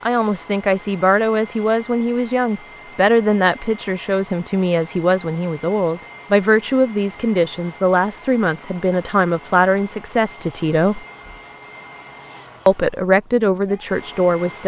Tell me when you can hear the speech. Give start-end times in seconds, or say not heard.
0.0-11.1, 12.7-14.6.